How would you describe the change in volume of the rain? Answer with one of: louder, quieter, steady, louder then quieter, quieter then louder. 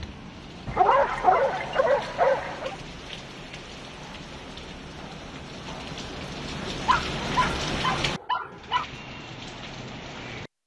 louder then quieter.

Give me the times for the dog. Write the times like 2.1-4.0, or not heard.
0.7-2.8, 6.8-8.8.